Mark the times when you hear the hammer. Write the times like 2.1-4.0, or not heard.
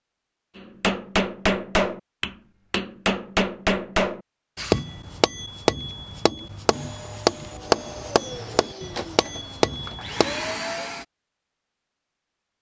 0.6-10.5.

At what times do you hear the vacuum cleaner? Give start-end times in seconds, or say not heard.
6.7-11.1.